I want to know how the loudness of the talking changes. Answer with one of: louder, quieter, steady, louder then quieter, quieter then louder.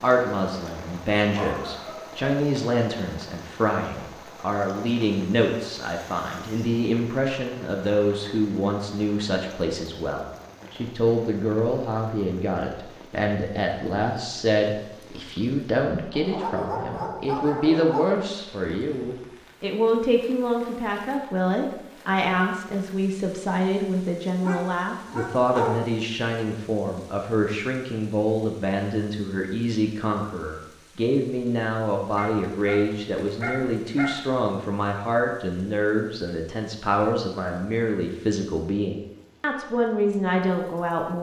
steady.